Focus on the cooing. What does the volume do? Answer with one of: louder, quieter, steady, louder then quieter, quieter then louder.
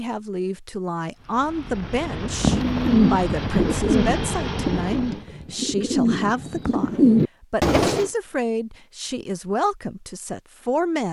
quieter then louder.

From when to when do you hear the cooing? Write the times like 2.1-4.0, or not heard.
2.4-8.1.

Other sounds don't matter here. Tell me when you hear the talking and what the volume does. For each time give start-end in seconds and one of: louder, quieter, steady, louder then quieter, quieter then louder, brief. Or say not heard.
0.0-11.0 steady.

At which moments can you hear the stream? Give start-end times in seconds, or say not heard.
not heard.